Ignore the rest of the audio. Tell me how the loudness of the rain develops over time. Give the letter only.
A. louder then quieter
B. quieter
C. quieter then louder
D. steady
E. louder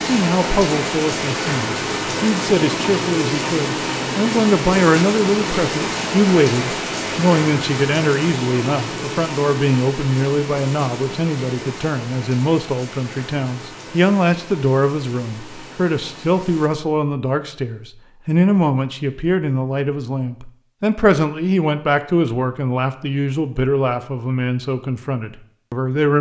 B.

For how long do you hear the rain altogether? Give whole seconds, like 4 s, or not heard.
17 s.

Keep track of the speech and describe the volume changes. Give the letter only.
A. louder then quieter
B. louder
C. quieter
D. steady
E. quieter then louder
D.